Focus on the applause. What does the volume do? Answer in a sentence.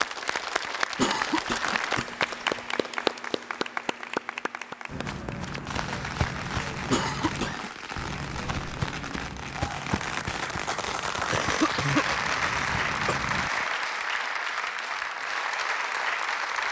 The loudness of the applause goes down, then up.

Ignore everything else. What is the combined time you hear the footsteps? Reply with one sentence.
You can hear the footsteps for 9 seconds altogether.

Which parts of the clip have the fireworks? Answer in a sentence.
The fireworks can be heard from 5.7 to 13.9 s.